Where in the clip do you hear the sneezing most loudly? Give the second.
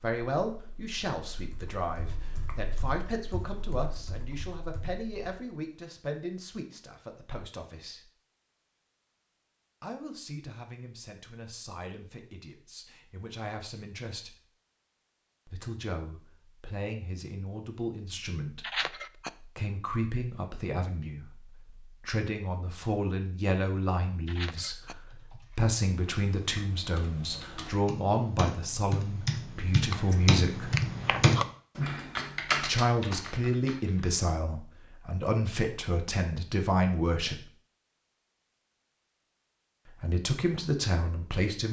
19 s.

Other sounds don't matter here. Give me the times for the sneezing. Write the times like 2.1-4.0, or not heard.
18.6-19.3, 24.2-24.9.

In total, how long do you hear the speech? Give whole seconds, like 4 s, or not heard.
35 s.